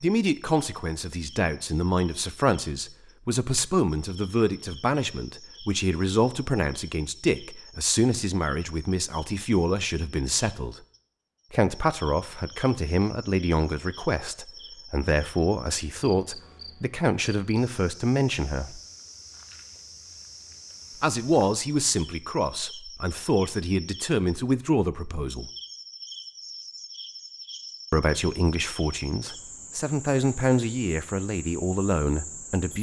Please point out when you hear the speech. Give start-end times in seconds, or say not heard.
0.0-10.8, 11.5-18.8, 21.0-25.5, 27.9-32.7.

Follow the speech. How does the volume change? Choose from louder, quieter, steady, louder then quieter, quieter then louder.
steady.